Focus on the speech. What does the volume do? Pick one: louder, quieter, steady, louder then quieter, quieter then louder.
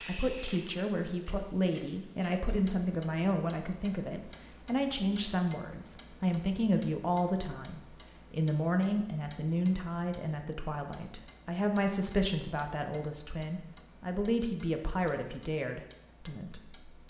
steady.